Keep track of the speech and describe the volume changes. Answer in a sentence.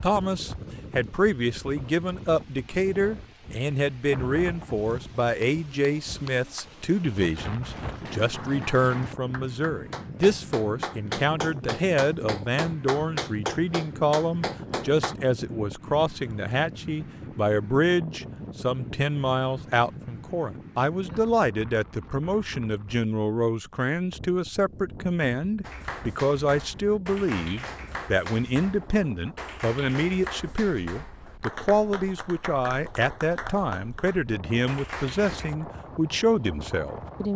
The loudness of the speech stays about the same.